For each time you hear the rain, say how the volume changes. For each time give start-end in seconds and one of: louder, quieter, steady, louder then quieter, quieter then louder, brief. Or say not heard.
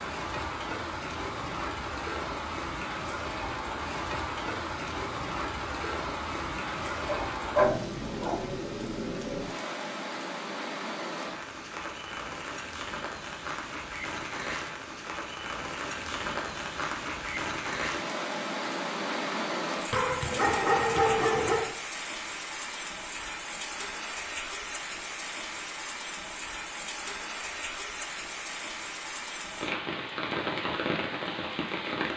0.0-32.1 steady.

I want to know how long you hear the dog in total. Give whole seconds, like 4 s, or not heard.
3 s.